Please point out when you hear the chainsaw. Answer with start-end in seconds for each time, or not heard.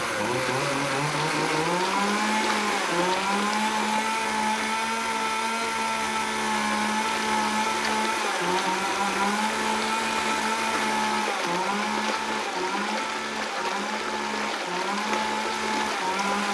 0.0-16.4.